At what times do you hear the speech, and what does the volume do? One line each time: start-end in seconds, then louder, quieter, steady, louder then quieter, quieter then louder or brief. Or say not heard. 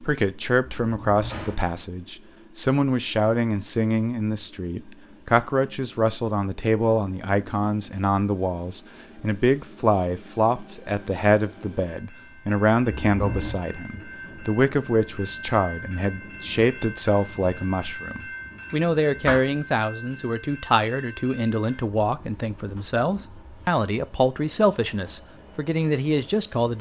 0.0-26.7 steady.